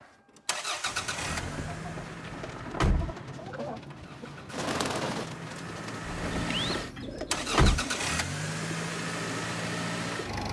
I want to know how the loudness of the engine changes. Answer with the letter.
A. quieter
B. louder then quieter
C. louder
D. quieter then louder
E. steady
D.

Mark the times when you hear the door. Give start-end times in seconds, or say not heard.
1.2-3.1, 6.0-7.8.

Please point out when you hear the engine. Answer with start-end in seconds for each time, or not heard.
0.0-10.4.